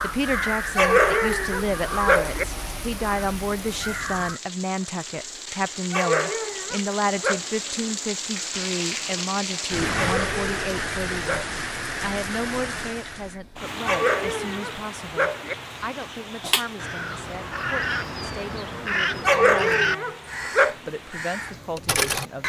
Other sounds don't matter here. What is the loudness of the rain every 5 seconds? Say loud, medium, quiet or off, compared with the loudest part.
medium, loud, loud, medium, quiet.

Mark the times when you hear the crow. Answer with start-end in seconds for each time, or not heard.
0.0-4.4, 16.4-22.4.